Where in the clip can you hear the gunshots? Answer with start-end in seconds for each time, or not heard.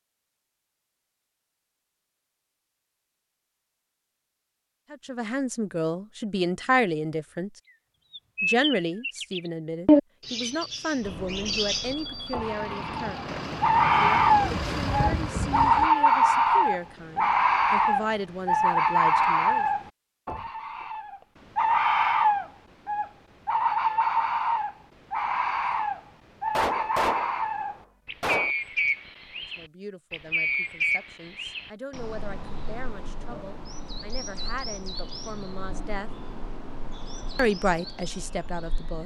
13.2-13.7, 26.6-28.5.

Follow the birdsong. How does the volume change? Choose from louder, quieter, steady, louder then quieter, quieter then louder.
quieter.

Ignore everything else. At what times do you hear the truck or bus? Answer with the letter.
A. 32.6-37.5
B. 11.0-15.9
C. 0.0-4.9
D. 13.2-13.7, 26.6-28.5
B.